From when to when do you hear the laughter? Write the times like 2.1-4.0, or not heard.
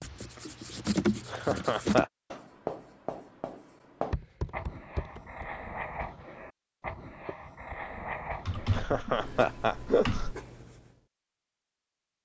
1.2-2.0, 8.7-10.3.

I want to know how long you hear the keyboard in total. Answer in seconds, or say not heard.
6 s.